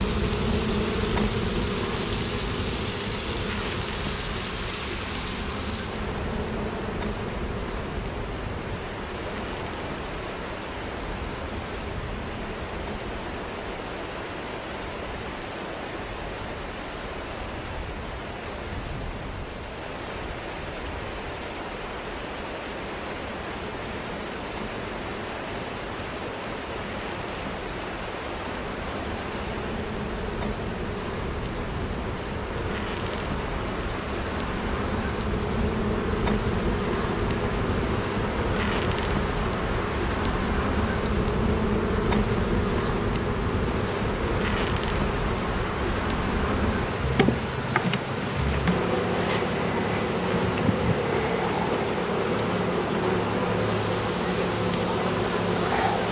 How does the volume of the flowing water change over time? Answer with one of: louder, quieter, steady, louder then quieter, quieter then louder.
steady.